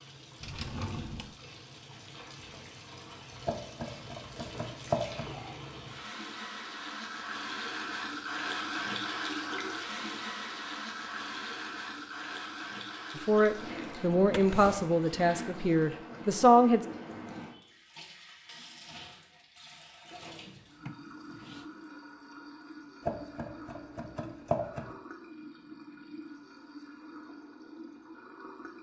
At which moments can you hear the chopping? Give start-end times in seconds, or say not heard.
3.5-5.3, 23.1-24.9.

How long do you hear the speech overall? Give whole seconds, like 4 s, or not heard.
4 s.